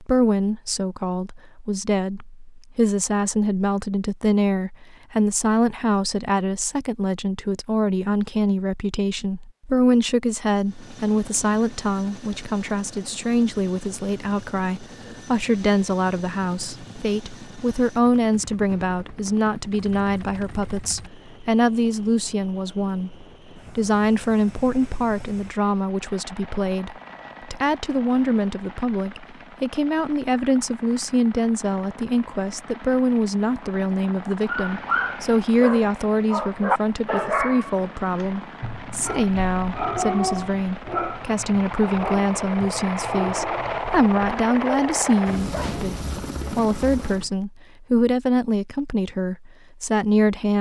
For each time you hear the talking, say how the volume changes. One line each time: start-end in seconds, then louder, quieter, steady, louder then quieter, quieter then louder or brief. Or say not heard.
0.0-50.5 steady.